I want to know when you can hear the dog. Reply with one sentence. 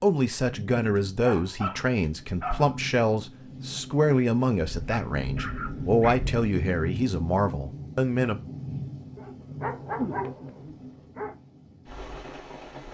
You can hear the dog from 0.8 to 2.8 s, from 4.5 to 6.5 s and from 9.2 to 11.3 s.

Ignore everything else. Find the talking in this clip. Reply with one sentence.
The talking can be heard from 0.0 to 8.4 s.